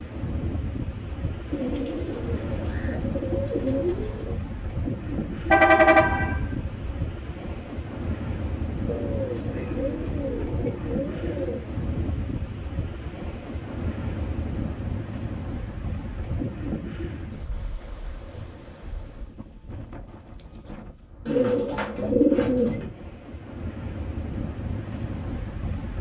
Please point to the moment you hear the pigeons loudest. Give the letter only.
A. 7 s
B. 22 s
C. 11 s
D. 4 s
B.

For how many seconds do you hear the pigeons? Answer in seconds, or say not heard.
7 s.